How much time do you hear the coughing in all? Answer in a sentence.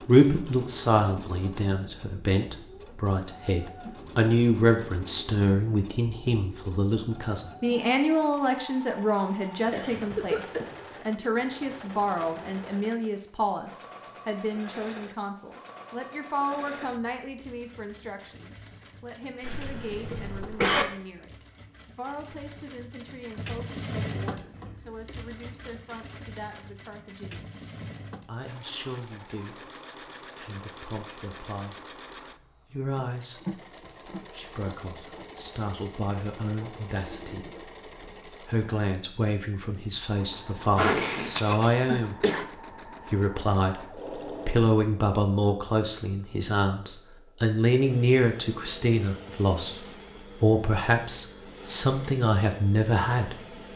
You can hear the coughing for 4 seconds altogether.